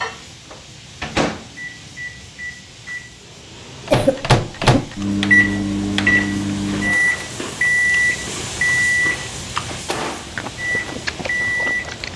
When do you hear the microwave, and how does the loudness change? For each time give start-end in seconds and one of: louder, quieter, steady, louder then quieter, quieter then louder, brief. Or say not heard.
0.0-12.1 louder then quieter.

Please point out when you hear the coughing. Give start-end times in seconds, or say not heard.
3.9-4.9.